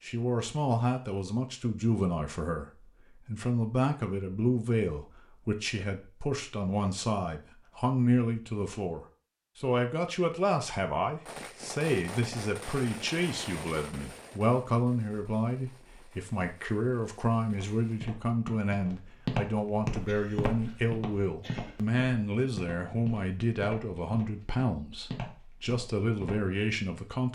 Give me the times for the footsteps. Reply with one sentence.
You can hear the footsteps from 17.4 to 26.6 s.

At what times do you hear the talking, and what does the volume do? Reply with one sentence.
The talking can be heard from 0.0 to 27.3 s, at a steady volume.